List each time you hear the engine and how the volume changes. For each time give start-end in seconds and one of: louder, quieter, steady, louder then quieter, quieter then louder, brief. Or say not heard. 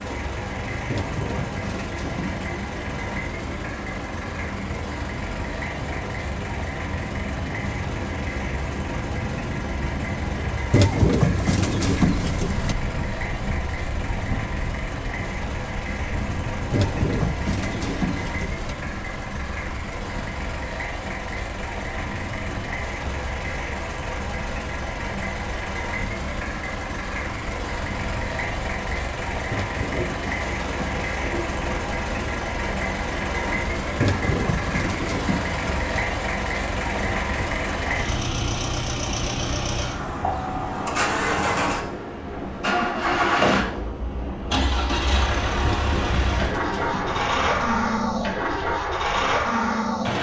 0.0-50.1 louder.